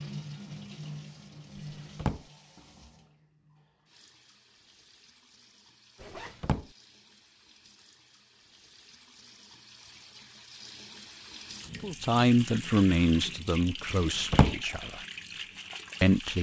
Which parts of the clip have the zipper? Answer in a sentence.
You can hear the zipper from 6.0 to 6.5 s.